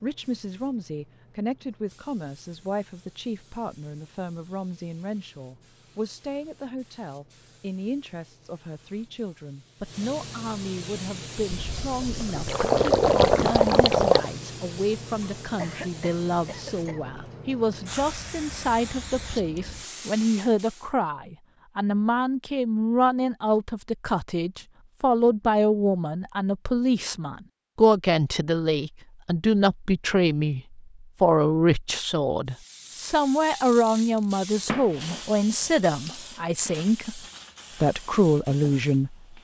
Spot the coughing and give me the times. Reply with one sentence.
You can hear the coughing from 15.6 to 17.1 s.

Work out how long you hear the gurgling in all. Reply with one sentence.
The gurgling can be heard for 3 seconds in total.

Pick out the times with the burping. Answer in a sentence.
The burping can't be heard in this clip.